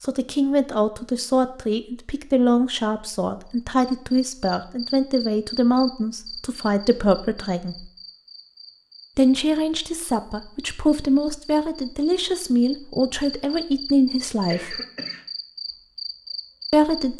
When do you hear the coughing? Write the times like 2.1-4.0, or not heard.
14.3-15.2.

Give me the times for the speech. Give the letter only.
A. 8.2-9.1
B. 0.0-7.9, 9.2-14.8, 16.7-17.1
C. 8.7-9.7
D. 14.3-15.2
B.